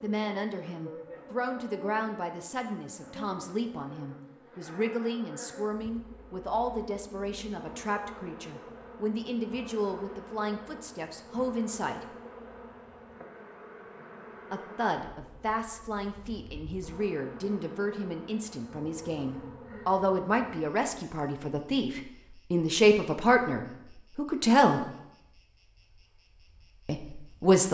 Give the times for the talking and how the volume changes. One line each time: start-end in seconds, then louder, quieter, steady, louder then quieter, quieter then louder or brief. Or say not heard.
0.0-12.0 steady
14.5-24.9 louder
26.9-27.7 brief.